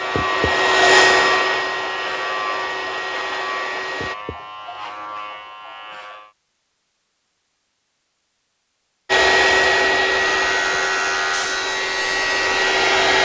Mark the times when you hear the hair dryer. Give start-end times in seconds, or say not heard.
0.0-4.2, 9.1-13.2.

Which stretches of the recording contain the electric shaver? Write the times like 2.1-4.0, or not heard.
0.0-6.3, 10.1-13.2.